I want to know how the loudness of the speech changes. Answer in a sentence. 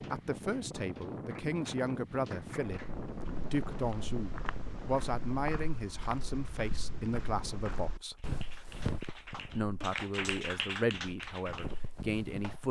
The volume of the speech stays about the same.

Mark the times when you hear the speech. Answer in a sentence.
You can hear the speech from 0.0 to 8.3 s and from 9.6 to 12.6 s.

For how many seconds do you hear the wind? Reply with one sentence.
The wind can be heard for 8 seconds in total.